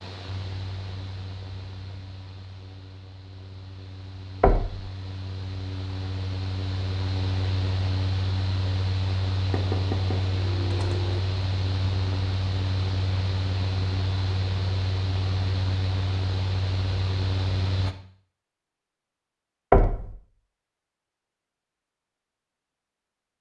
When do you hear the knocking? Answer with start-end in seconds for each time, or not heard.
4.4-4.8, 9.5-11.2, 19.7-20.1.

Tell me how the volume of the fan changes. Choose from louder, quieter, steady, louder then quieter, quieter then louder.
louder.